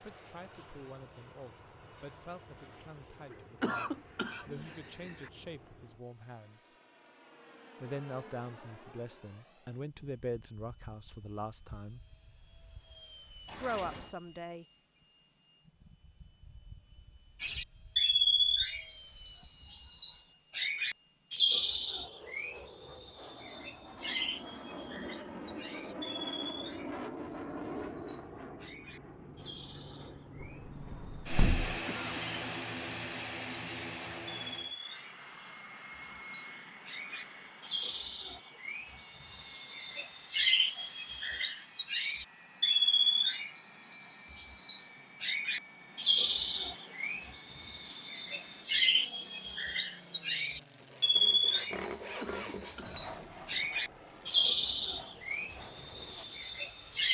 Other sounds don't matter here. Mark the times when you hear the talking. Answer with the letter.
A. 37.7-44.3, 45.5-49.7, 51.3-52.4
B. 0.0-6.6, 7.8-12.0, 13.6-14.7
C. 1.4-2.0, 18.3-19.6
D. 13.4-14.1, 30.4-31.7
B.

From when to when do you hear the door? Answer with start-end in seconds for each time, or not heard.
13.4-14.1, 30.4-31.7.